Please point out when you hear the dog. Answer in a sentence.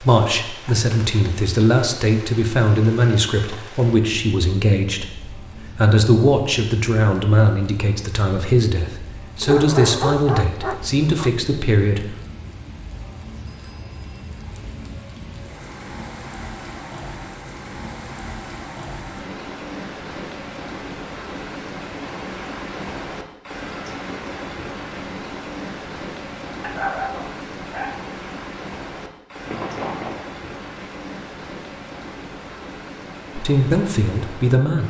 You can hear the dog from 9.4 to 11.3 s and from 26.6 to 28.1 s.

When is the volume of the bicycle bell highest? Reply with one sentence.
The volume of the bicycle bell peaks at 30 seconds.